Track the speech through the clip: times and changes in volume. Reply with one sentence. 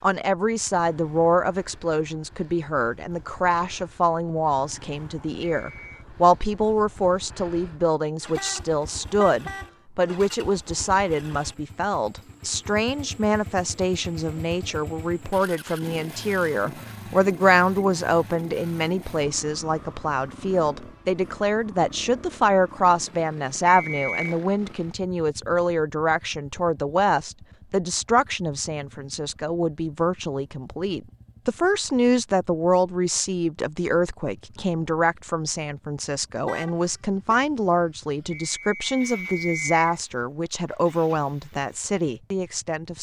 The speech can be heard from 0.0 to 42.9 s, at a steady volume.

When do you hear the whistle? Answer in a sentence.
You can hear the whistle from 5.6 to 6.0 s, from 23.6 to 24.4 s and from 38.3 to 39.8 s.